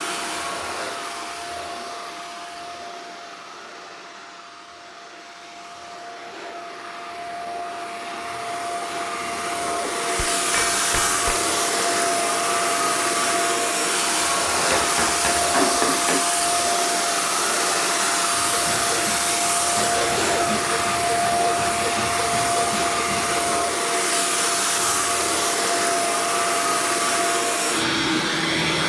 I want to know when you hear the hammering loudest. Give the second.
16 s.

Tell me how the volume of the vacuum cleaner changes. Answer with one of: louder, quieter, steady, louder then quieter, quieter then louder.
louder.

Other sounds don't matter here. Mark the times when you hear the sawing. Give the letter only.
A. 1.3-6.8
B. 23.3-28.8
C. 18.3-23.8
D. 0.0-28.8
C.